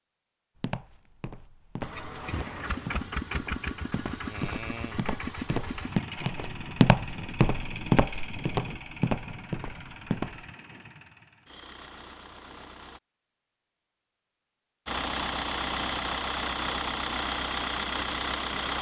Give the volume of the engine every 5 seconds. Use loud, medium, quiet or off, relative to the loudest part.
medium, medium, quiet, loud.